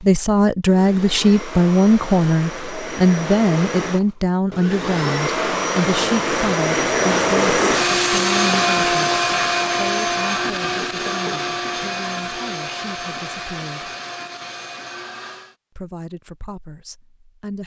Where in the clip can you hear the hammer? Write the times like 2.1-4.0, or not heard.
not heard.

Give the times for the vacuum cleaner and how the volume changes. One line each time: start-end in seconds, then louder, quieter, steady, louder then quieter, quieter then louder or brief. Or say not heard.
0.0-15.6 louder then quieter.